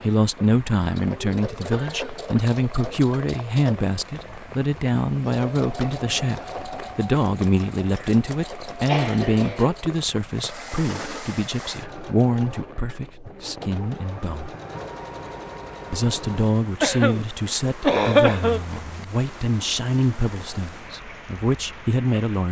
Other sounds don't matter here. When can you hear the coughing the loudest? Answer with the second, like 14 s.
18 s.